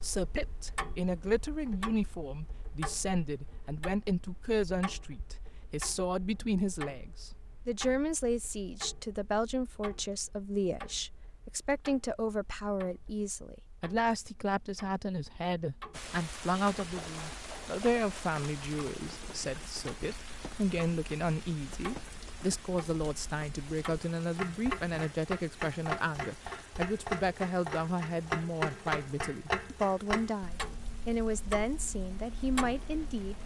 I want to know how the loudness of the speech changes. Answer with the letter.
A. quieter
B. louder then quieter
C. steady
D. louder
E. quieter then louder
C.